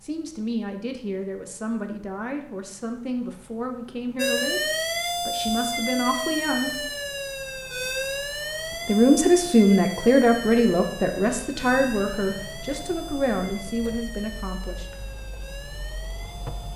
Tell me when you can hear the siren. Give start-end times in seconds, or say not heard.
4.2-16.7.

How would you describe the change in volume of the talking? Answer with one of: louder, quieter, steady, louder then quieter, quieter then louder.
louder then quieter.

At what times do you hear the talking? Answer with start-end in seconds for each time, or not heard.
0.0-6.7, 8.8-14.9.